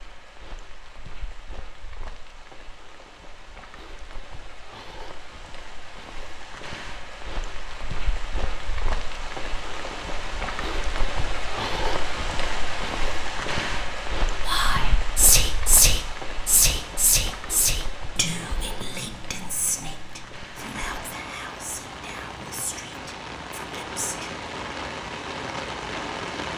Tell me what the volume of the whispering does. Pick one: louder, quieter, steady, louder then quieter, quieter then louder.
quieter.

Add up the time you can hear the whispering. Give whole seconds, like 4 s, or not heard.
10 s.